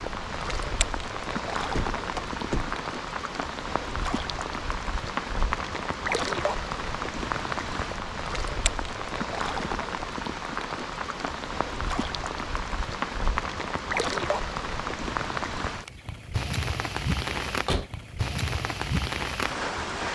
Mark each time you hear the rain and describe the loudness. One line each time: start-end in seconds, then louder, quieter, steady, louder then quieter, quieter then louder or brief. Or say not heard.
0.0-20.1 steady.